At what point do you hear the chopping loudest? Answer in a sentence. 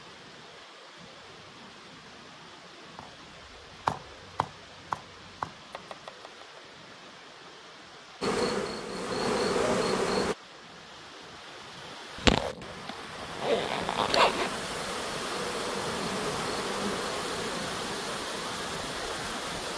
The volume of the chopping peaks at 4 seconds.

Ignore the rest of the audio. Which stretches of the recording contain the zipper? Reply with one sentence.
You can hear the zipper from 12.2 to 14.5 s.